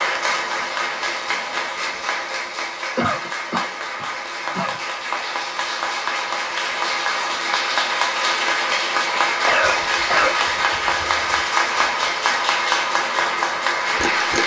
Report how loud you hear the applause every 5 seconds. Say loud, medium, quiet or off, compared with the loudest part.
medium, loud, loud.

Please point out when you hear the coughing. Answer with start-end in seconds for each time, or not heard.
3.0-4.8, 9.4-11.4.